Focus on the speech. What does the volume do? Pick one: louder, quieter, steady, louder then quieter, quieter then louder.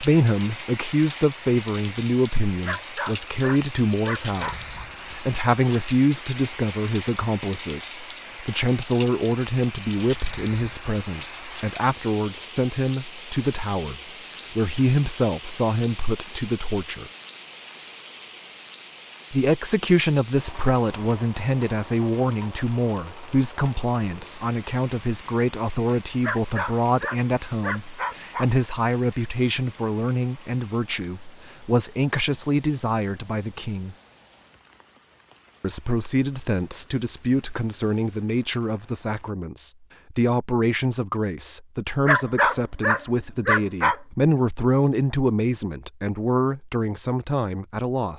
steady.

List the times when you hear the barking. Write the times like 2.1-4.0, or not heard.
2.6-4.8, 26.2-28.5, 42.0-44.0.